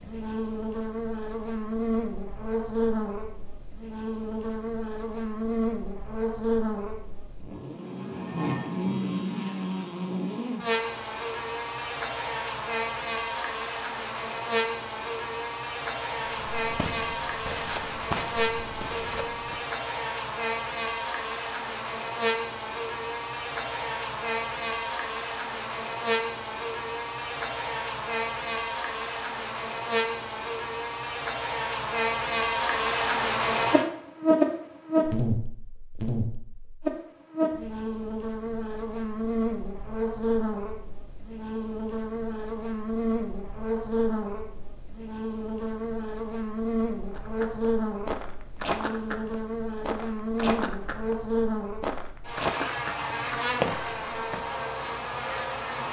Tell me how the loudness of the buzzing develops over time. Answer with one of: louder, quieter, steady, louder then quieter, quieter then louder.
steady.